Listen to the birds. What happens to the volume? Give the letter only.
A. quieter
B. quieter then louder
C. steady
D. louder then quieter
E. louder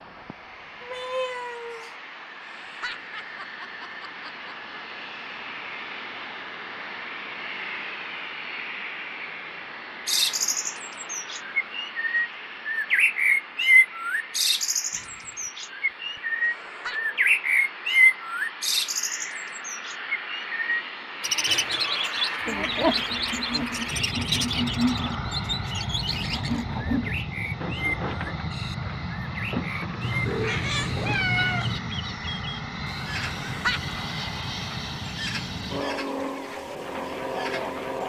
A.